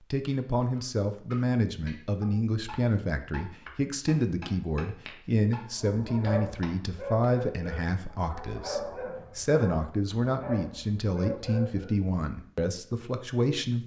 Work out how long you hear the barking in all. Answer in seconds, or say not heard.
6 s.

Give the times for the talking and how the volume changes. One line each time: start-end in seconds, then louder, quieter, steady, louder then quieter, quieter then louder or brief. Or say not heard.
0.1-13.8 steady.